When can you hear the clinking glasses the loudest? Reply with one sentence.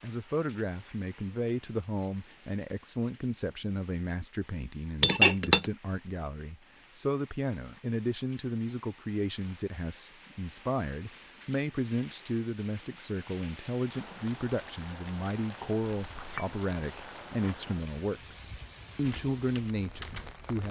The volume of the clinking glasses peaks at 5 seconds.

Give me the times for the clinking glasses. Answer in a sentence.
The clinking glasses can be heard from 5.0 to 5.7 s and from 16.0 to 16.6 s.